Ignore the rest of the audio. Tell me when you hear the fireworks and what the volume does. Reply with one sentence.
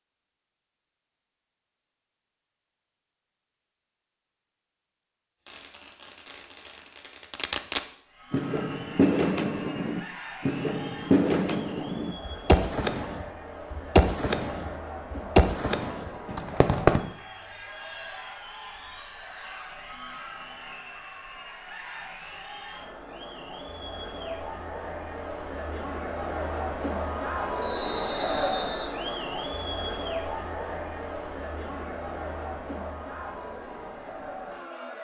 The fireworks can be heard from 5.5 to 17.0 s, getting louder.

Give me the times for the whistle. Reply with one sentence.
You can hear the whistle from 27.6 to 28.9 s.